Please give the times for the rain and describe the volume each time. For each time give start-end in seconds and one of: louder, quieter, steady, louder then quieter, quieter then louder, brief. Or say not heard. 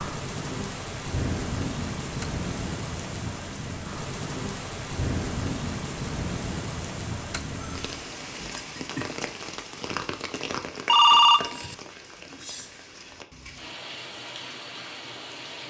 0.0-15.6 quieter.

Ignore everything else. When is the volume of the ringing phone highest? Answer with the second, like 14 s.
11 s.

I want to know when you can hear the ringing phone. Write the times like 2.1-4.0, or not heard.
2.0-2.5, 7.2-8.1, 10.8-11.8.